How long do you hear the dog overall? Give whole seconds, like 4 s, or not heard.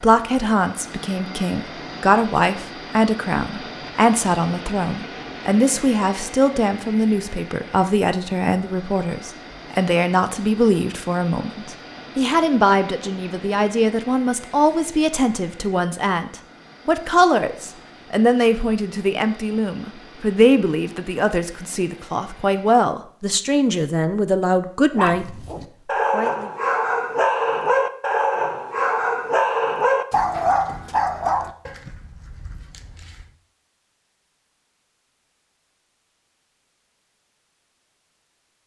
8 s.